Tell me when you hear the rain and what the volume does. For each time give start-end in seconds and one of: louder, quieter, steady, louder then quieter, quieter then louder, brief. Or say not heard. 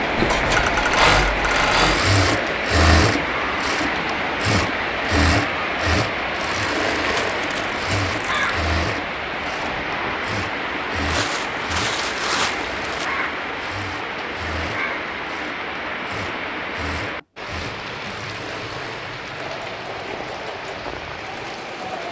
0.0-22.0 quieter.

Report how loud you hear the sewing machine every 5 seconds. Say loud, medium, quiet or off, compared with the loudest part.
loud, medium, quiet, quiet, quiet.